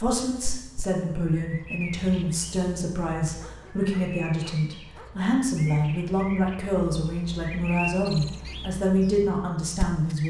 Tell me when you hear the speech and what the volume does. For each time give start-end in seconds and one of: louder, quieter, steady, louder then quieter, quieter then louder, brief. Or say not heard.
0.0-10.2 steady.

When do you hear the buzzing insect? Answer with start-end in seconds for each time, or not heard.
not heard.